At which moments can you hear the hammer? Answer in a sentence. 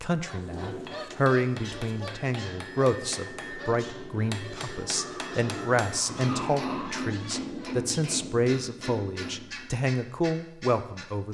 The hammer can be heard from 0.2 to 9.8 s.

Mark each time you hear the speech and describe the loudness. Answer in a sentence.
You can hear the speech from 0.0 to 11.2 s, at a steady volume.